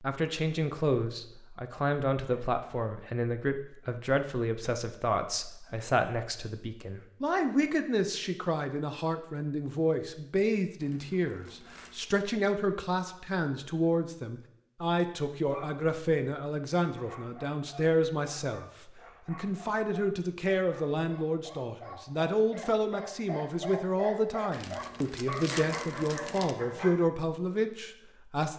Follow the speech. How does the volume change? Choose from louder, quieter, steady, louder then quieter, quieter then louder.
steady.